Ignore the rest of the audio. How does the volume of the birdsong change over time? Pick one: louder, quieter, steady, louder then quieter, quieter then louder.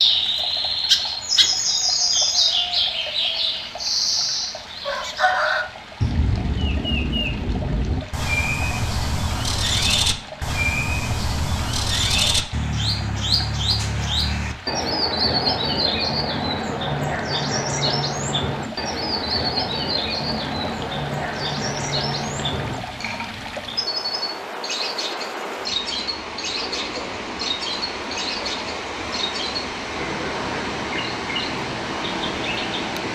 quieter.